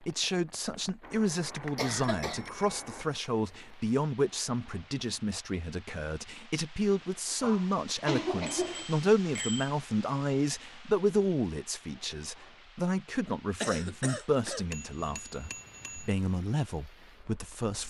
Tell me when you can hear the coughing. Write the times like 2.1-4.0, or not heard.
1.8-2.5, 7.4-8.9, 13.6-14.7.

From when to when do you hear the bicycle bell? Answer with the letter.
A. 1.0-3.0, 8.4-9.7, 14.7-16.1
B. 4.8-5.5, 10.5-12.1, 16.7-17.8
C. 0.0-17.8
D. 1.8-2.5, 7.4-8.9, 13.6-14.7
A.